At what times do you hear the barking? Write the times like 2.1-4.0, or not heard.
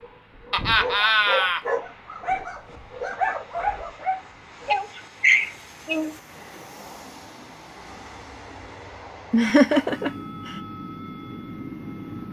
0.0-4.8.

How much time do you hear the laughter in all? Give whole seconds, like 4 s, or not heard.
4 s.